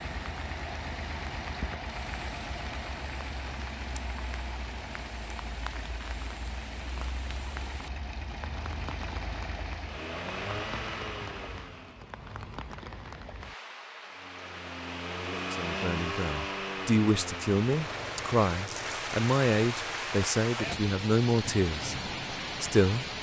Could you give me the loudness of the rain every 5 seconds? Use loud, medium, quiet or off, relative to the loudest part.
medium, medium, medium, loud, loud.